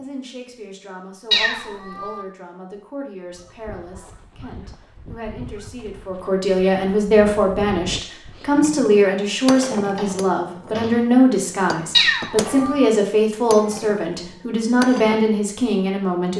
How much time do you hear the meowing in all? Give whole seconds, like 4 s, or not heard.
2 s.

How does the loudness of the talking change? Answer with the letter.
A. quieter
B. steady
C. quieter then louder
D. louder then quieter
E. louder
E.